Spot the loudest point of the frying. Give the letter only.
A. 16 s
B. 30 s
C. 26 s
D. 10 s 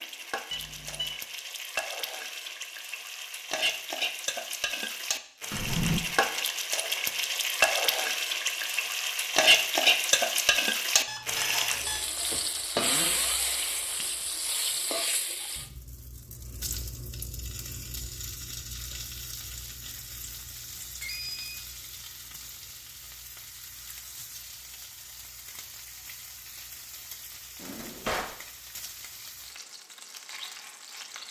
D.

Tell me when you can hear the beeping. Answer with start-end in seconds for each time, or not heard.
0.5-1.1, 11.1-12.1, 21.0-21.6.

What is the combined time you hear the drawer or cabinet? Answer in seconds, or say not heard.
2 s.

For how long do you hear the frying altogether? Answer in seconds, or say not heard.
31 s.